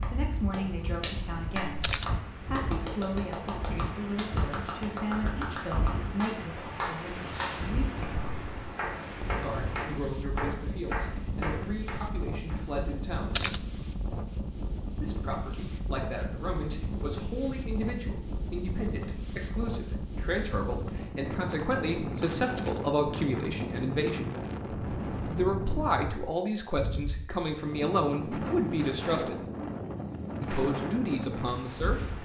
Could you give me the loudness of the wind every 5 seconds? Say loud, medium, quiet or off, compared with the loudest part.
medium, loud, loud, loud, loud, loud, loud.